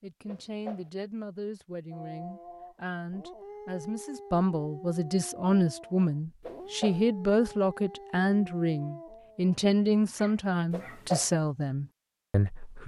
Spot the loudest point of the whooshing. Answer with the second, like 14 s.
11 s.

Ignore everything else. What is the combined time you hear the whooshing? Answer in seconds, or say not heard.
2 s.